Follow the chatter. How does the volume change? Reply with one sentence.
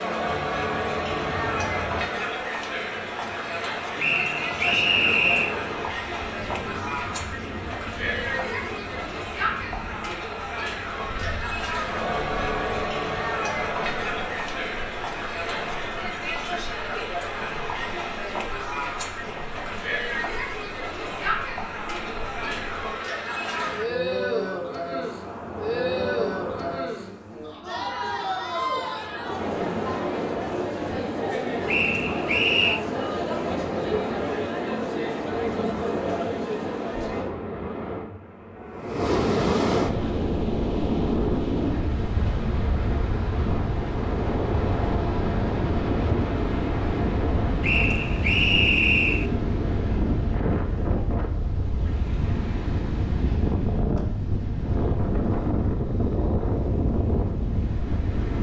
The volume of the chatter stays about the same.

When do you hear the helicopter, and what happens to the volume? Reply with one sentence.
You can't hear the helicopter here.